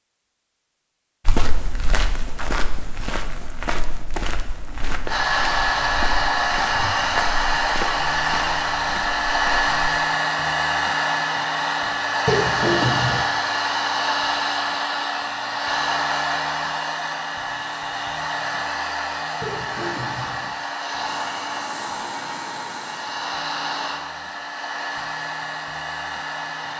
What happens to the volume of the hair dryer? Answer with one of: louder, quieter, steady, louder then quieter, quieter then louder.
quieter.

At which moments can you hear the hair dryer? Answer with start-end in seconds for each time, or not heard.
5.0-26.7.